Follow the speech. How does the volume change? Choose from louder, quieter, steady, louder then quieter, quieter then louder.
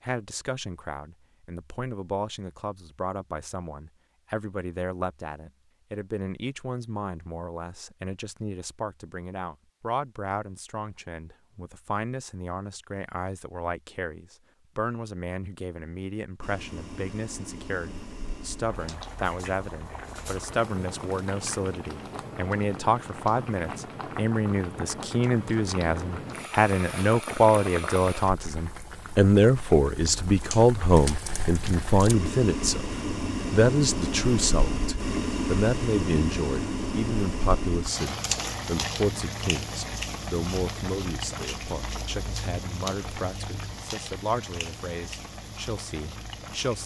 louder then quieter.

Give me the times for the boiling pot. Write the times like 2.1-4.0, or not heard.
16.4-46.8.